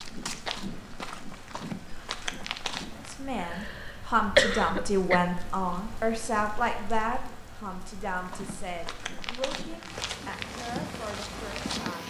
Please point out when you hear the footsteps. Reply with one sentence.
The footsteps can be heard from 0.0 to 3.2 s and from 8.2 to 12.0 s.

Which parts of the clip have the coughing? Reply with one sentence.
The coughing can be heard from 3.4 to 5.2 s.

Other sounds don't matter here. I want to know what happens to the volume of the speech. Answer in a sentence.
The volume of the speech goes down.